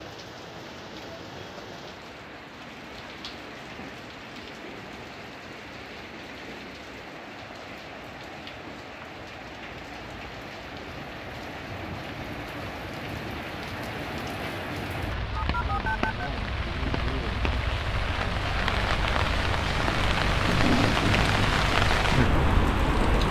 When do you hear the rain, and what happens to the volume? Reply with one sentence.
The rain can be heard from 0.0 to 23.2 s, getting louder.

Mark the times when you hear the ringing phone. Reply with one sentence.
The ringing phone can be heard from 15.3 to 16.3 s.